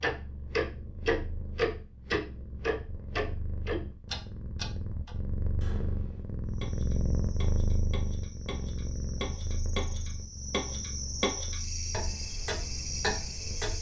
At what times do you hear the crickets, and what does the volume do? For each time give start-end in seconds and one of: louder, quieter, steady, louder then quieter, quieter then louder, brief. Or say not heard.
6.5-13.7 louder.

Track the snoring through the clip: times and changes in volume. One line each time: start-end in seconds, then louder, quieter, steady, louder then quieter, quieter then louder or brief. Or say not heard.
not heard.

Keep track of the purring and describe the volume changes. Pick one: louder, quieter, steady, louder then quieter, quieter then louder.
louder then quieter.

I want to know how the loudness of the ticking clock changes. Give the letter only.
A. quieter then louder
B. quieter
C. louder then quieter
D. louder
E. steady
A.